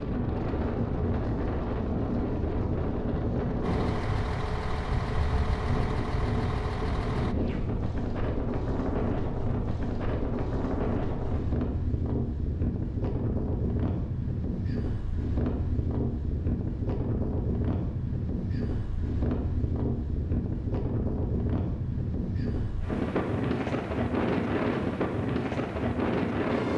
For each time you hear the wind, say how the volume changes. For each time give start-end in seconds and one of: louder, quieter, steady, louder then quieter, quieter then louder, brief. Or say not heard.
0.0-26.7 steady.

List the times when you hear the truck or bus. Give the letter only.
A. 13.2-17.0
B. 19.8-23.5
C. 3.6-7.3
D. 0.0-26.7
C.